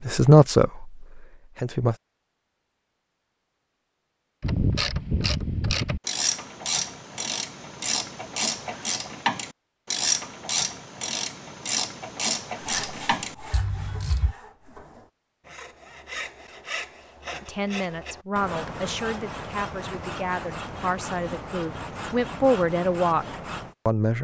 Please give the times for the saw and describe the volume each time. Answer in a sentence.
You can hear the saw from 12.6 to 23.8 s, getting louder.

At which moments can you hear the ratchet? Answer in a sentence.
The ratchet can be heard from 4.4 to 14.3 s.